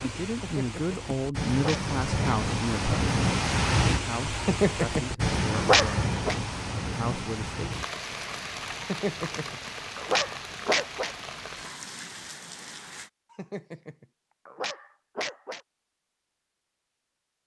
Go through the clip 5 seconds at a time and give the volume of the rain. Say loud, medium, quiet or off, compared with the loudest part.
loud, loud, medium, off.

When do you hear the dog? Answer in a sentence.
You can hear the dog from 0.3 to 2.4 s, from 4.4 to 6.3 s, from 8.8 to 11.2 s and from 13.3 to 15.6 s.